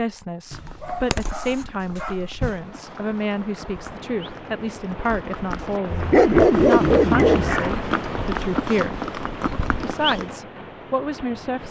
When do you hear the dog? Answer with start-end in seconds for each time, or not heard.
0.5-2.6, 5.9-7.8.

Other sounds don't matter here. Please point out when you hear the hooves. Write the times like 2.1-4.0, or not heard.
0.3-10.3.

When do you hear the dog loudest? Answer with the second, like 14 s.
6 s.